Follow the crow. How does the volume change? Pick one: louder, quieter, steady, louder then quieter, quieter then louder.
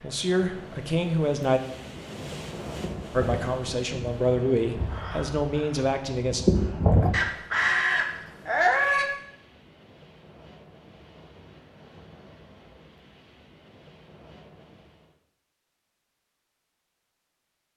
quieter then louder.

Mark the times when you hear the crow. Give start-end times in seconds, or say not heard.
2.7-9.1.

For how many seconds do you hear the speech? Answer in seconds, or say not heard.
5 s.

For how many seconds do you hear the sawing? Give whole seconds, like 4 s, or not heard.
not heard.